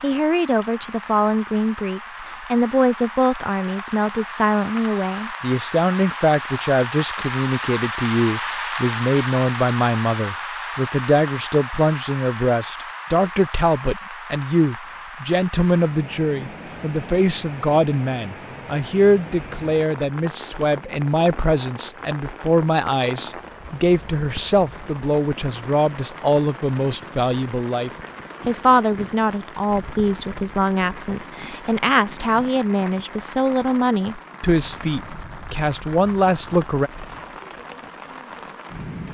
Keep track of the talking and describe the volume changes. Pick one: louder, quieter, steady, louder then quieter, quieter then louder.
steady.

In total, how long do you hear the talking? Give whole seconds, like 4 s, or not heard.
37 s.